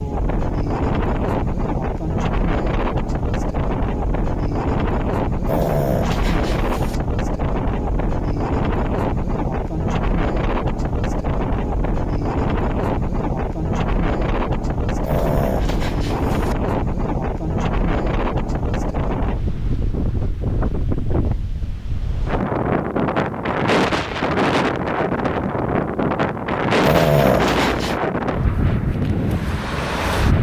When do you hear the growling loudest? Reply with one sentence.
The volume of the growling peaks at 27 seconds.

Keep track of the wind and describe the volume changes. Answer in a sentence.
The loudness of the wind stays about the same.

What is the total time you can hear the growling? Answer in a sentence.
The growling can be heard for 4 seconds in total.